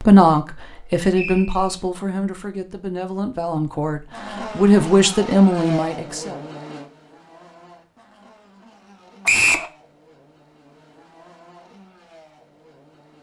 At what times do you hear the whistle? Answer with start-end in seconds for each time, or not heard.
1.1-1.6, 9.2-9.7.